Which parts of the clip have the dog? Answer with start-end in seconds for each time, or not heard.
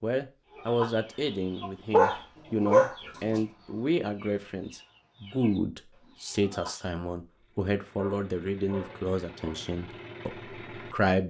1.9-3.4, 8.0-9.6.